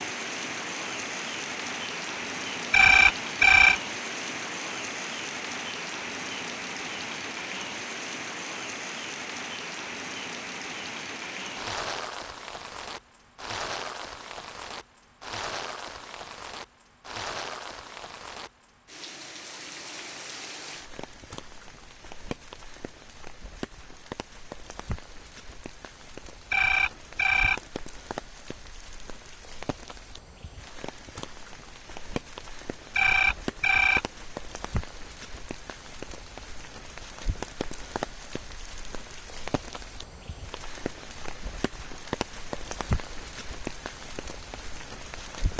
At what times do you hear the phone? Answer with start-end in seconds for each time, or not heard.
2.7-3.8, 26.5-27.6, 33.0-34.0.